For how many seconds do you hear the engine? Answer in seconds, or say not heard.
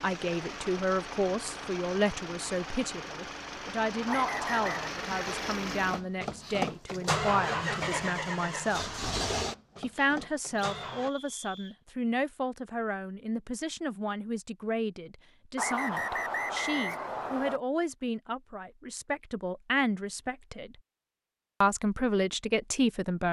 11 s.